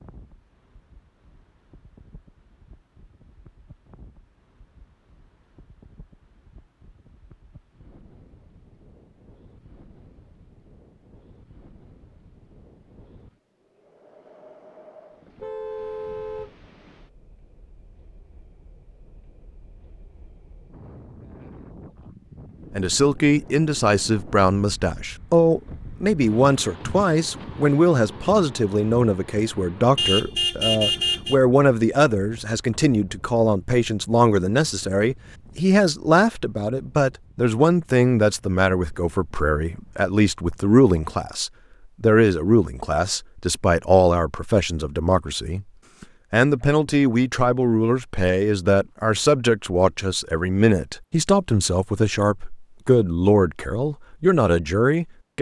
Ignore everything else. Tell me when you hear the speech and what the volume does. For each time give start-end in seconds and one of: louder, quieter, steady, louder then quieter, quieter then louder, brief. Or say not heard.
22.8-55.3 steady.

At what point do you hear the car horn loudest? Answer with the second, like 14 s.
31 s.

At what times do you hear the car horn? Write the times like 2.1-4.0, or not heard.
15.3-16.6, 29.9-31.4.